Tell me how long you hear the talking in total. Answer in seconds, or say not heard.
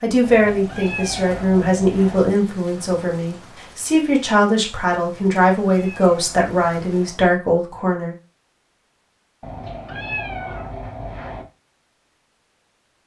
8 s.